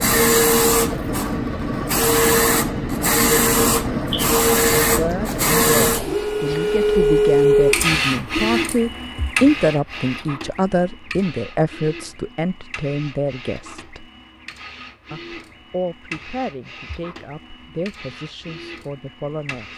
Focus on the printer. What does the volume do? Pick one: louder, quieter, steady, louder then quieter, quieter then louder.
quieter.